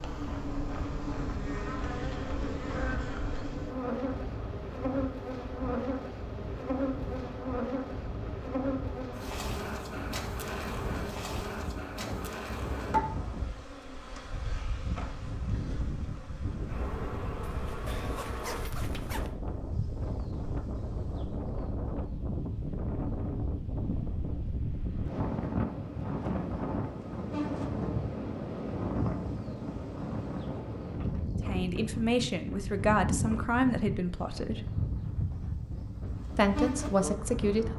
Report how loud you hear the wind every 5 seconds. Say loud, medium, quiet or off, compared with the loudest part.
medium, medium, medium, medium, loud, loud, loud, medium.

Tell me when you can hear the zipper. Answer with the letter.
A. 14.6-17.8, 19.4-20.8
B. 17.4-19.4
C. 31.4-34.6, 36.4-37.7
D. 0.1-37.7
B.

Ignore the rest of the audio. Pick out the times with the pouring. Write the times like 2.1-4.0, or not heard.
not heard.